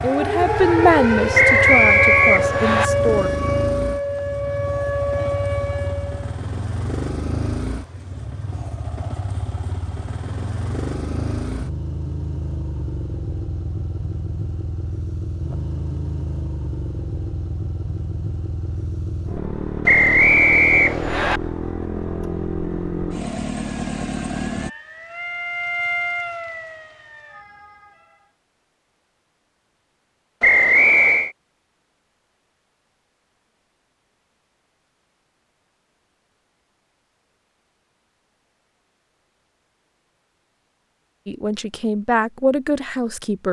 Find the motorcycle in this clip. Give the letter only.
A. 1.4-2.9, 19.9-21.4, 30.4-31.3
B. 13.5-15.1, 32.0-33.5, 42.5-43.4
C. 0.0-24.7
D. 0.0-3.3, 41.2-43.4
C.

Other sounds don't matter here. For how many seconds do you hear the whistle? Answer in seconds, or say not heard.
4 s.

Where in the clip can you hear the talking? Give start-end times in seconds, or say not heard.
0.0-3.3, 41.2-43.4.